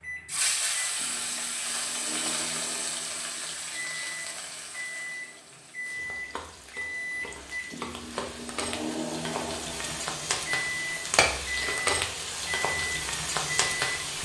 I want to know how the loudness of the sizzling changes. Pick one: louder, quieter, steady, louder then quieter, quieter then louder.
quieter then louder.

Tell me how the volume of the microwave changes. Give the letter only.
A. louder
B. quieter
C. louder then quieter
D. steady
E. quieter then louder
A.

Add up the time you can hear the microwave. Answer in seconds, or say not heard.
14 s.